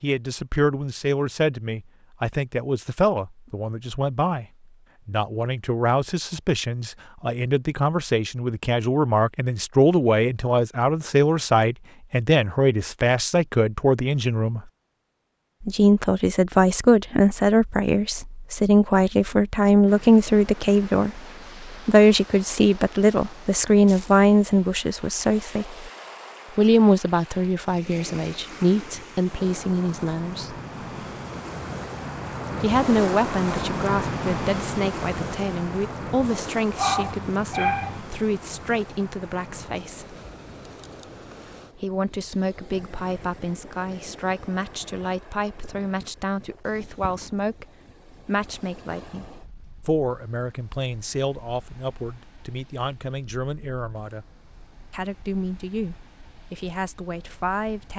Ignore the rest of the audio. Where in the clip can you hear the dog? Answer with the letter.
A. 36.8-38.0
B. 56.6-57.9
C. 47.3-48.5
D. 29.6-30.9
A.